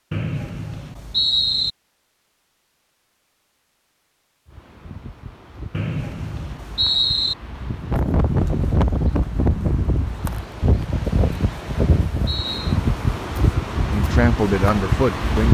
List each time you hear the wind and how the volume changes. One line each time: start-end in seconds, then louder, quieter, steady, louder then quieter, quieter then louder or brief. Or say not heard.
4.5-15.5 louder.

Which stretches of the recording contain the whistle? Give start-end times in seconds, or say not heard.
0.1-1.7, 5.7-7.3, 11.2-12.8.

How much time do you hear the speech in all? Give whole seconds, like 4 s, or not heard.
2 s.